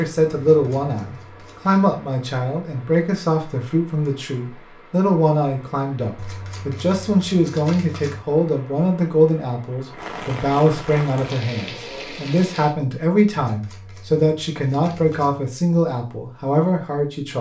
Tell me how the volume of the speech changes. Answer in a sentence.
The loudness of the speech stays about the same.